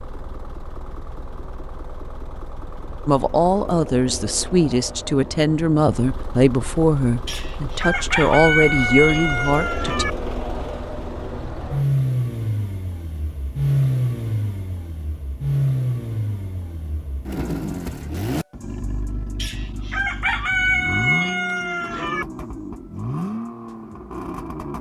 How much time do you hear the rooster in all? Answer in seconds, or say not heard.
6 s.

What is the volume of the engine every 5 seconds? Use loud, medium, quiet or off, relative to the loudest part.
quiet, medium, loud, loud, medium.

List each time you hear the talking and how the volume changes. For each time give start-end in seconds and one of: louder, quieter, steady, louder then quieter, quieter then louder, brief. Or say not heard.
3.0-10.1 steady.